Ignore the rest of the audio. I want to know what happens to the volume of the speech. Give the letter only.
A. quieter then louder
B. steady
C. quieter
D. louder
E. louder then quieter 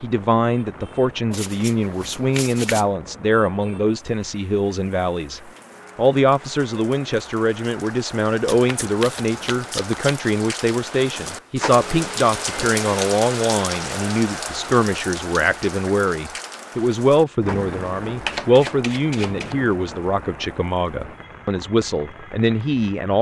B.